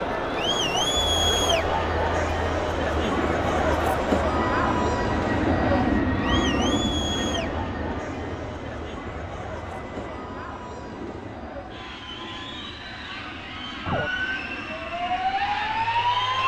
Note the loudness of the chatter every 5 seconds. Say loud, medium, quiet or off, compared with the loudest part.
loud, medium, quiet, medium.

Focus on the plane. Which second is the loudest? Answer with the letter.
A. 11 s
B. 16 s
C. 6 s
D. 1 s
C.